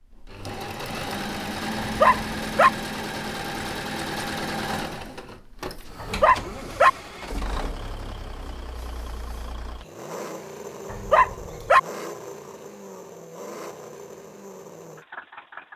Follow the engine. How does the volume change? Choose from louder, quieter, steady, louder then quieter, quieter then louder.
quieter.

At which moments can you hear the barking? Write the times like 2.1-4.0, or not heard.
1.8-2.7, 6.0-6.9, 10.9-11.8.